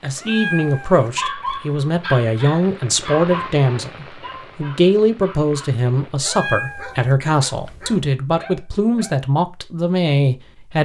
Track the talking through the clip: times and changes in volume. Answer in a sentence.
The talking can be heard from 0.0 to 10.8 s, at a steady volume.